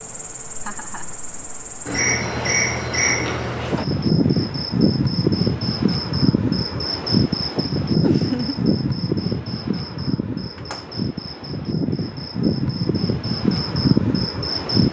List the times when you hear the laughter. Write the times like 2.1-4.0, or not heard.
0.6-1.1, 8.0-8.6.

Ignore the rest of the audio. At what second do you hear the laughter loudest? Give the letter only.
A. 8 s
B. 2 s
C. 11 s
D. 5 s
A.